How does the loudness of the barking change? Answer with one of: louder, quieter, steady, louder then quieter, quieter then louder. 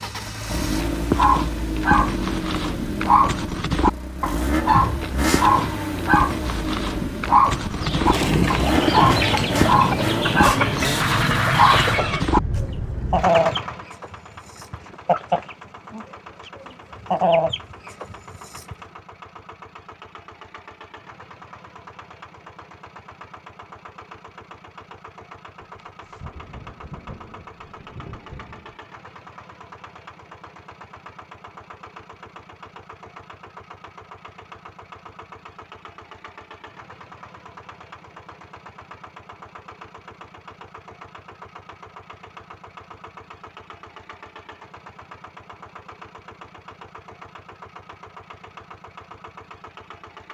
steady.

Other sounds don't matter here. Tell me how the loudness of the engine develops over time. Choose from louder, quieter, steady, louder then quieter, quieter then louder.
quieter.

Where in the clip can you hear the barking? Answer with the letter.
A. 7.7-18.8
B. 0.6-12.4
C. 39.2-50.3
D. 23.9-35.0
B.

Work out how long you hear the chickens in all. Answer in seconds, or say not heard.
11 s.